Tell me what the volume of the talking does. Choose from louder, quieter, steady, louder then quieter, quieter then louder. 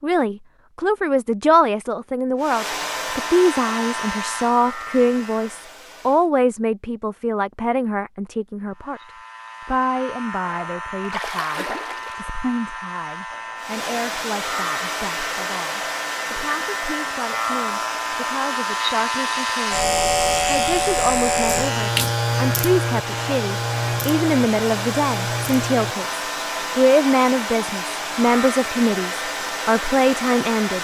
quieter then louder.